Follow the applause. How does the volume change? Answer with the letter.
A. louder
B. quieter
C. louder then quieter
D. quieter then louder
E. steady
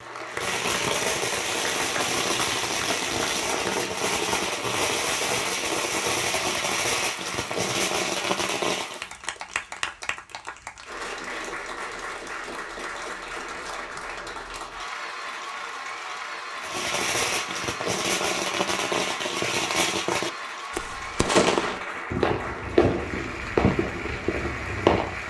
E.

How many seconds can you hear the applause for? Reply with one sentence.
The applause can be heard for 25 seconds in total.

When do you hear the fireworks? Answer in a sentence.
The fireworks can be heard from 0.3 to 9.0 s and from 16.6 to 25.2 s.